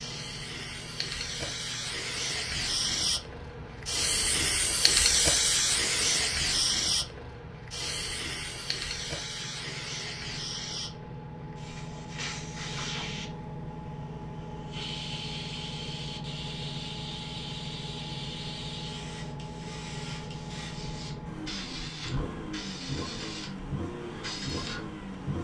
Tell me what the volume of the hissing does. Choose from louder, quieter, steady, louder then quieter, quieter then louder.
quieter.